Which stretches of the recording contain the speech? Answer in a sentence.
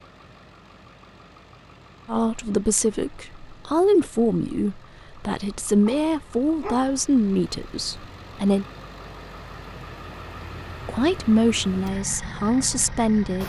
You can hear the speech from 2.0 to 8.7 s and from 10.8 to 13.4 s.